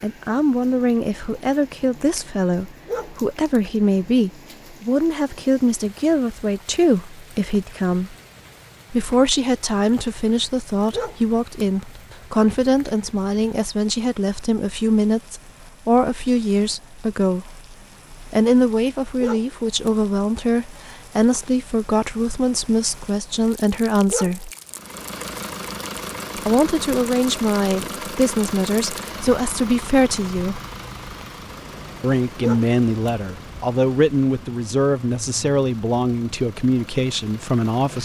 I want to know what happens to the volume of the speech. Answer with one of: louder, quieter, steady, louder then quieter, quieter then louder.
steady.